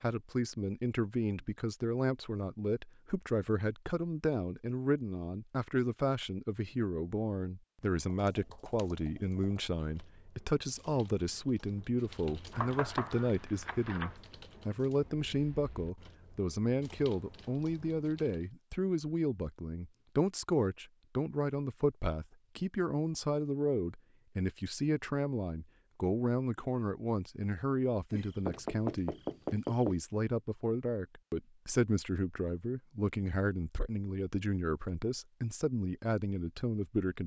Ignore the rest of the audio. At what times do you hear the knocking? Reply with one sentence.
You can hear the knocking from 12.5 to 14.2 s and from 28.1 to 30.0 s.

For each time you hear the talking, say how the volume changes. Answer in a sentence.
You can hear the talking from 0.0 to 37.2 s, at a steady volume.